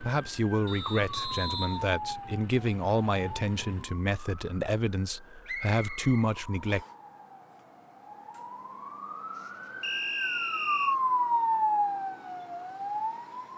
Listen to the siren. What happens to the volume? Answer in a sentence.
The volume of the siren goes down, then up.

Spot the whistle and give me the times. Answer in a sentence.
The whistle can be heard from 0.7 to 2.0 s, from 5.5 to 6.9 s and from 9.8 to 10.9 s.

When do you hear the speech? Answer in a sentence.
The speech can be heard from 0.0 to 6.8 s.